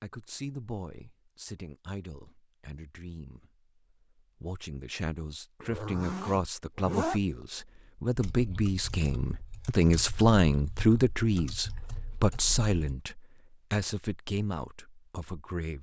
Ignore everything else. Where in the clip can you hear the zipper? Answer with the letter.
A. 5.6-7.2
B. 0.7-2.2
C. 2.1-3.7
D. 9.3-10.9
A.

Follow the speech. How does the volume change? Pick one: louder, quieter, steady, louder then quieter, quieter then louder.
louder then quieter.